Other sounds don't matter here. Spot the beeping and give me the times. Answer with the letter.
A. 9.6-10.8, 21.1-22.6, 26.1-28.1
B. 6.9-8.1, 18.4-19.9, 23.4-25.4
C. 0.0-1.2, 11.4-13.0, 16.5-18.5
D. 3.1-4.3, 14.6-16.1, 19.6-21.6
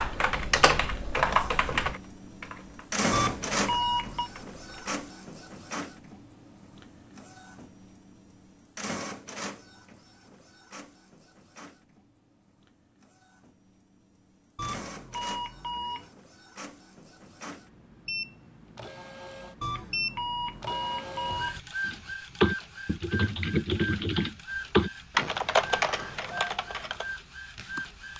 D.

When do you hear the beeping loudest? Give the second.
4 s.